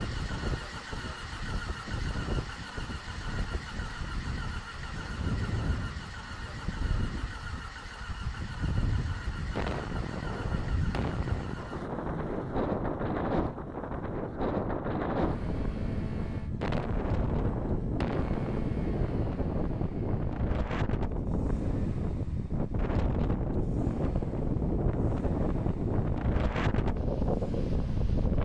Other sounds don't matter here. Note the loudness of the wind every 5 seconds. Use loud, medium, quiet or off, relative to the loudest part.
medium, medium, loud, loud, loud, loud.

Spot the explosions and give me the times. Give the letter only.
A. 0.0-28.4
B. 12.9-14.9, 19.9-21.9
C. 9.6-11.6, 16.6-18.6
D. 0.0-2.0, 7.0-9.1
C.